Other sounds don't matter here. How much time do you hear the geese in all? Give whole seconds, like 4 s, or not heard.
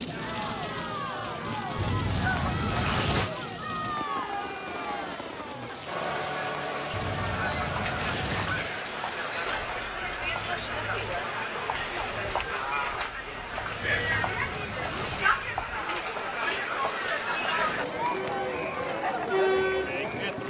5 s.